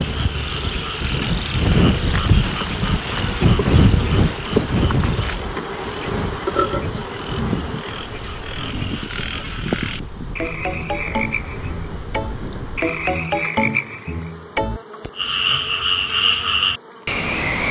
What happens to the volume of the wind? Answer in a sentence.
The loudness of the wind goes down.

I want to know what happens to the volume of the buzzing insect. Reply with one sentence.
The loudness of the buzzing insect goes up, then down.